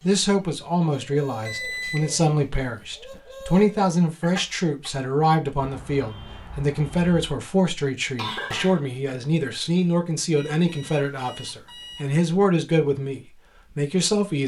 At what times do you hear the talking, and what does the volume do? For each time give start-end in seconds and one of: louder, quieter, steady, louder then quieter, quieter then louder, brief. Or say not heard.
0.0-14.4 steady.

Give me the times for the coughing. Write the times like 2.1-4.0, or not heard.
4.1-4.9, 8.2-8.8.